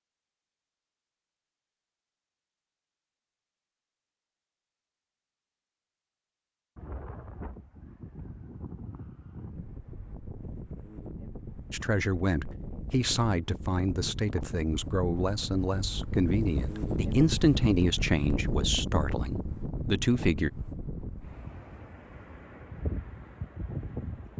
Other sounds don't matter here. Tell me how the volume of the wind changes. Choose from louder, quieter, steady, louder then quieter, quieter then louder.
louder then quieter.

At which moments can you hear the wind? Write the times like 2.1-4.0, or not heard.
6.8-24.3.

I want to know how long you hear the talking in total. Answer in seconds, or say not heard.
9 s.